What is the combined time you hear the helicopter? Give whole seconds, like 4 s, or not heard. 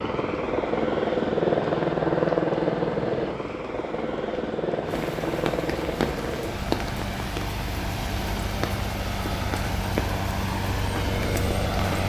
12 s.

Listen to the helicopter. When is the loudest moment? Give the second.
2 s.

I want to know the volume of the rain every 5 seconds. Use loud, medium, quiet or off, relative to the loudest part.
quiet, loud, loud.